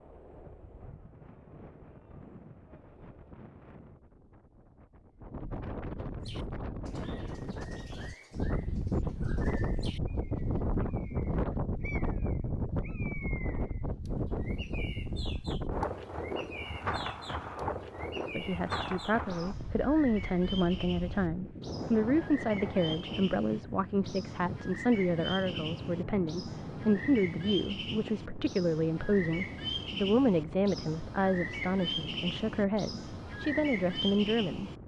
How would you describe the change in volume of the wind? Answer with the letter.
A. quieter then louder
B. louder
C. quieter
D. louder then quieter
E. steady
D.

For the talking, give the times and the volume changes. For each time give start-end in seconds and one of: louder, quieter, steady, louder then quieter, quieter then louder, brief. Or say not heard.
18.4-34.7 steady.